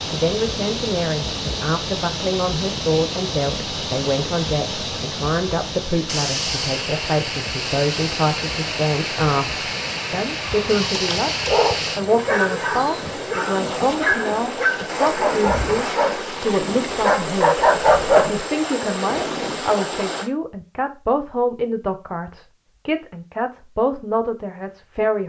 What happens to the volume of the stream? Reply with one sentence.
The volume of the stream stays about the same.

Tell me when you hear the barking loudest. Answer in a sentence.
The volume of the barking peaks at 18 seconds.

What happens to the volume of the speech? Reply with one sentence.
The volume of the speech stays about the same.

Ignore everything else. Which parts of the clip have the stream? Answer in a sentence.
The stream can be heard from 0.0 to 20.3 s.